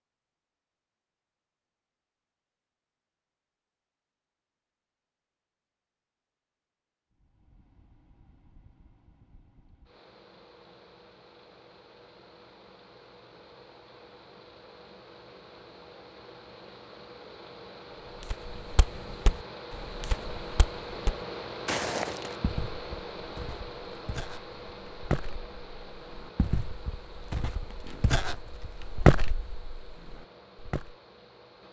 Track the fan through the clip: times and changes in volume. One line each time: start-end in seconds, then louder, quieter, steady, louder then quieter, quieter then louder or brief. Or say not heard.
7.1-31.6 louder then quieter.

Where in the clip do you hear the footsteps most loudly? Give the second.
29 s.